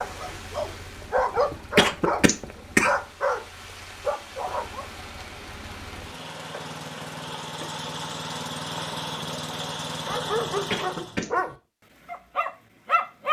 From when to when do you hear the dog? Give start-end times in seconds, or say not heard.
0.0-4.9, 10.1-13.2.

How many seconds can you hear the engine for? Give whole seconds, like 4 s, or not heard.
11 s.